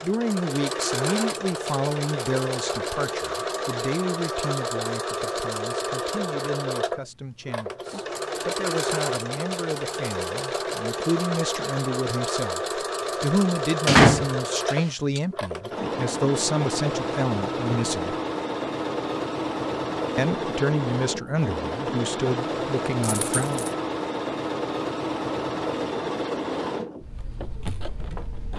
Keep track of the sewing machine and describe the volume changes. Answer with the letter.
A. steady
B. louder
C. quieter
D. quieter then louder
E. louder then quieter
A.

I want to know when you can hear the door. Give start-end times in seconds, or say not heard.
13.8-15.2.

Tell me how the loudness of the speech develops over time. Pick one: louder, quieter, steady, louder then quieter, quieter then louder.
quieter then louder.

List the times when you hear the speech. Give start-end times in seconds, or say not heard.
0.0-18.1, 20.1-23.6.